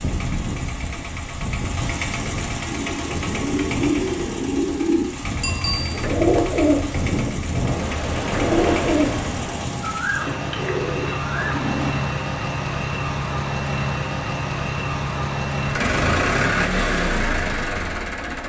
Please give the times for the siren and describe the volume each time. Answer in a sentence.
The siren can't be heard in this clip.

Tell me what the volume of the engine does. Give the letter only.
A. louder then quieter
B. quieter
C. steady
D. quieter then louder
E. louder
E.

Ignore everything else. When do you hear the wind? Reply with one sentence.
The wind can be heard from 0.0 to 10.1 s.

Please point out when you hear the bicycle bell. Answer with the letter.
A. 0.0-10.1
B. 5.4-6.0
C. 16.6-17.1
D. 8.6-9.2
B.